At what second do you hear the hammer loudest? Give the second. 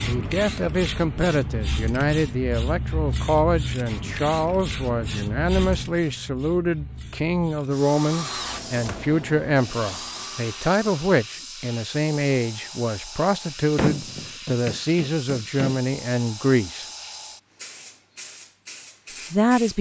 14 s.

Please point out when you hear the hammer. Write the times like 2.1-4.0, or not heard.
13.8-15.8.